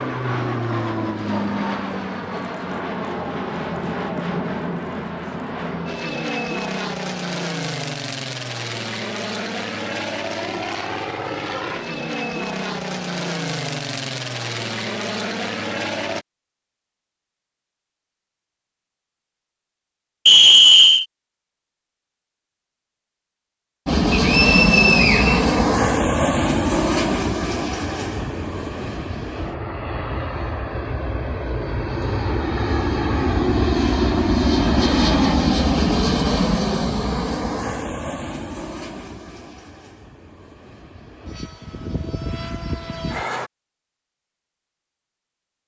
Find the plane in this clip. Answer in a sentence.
You can hear the plane from 0.0 to 16.2 s and from 23.9 to 43.5 s.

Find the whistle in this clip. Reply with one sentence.
The whistle can be heard from 20.2 to 21.1 s and from 24.1 to 25.6 s.